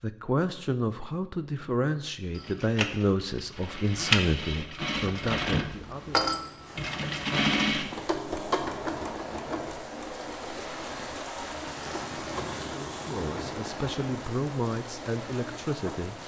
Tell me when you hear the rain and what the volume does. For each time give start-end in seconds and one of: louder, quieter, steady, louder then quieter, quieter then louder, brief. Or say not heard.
6.6-16.2 louder then quieter.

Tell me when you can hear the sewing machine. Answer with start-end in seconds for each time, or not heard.
2.3-16.2.